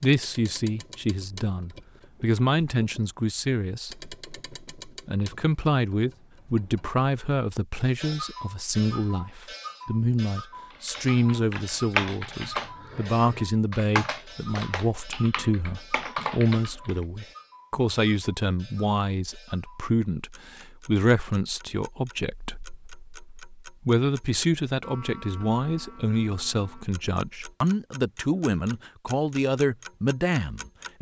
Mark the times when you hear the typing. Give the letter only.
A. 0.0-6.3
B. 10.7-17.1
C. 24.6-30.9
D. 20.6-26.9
B.